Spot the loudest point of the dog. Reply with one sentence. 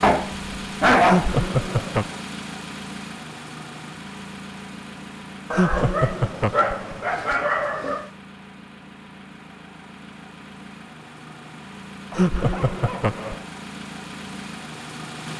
The volume of the dog peaks at 1 second.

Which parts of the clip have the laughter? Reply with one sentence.
You can hear the laughter from 1.1 to 2.1 s, from 5.5 to 7.2 s and from 12.2 to 13.4 s.